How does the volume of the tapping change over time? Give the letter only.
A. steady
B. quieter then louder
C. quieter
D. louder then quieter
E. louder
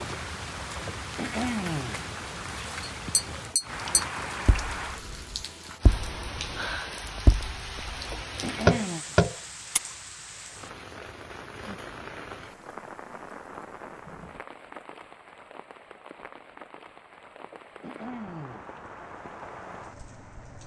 B.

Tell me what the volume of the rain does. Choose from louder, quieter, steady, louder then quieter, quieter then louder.
quieter.